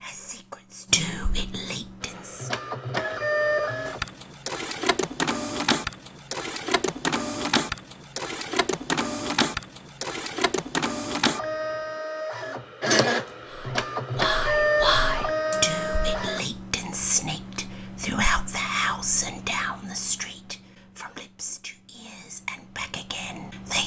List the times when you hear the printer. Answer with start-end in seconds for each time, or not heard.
2.0-16.4.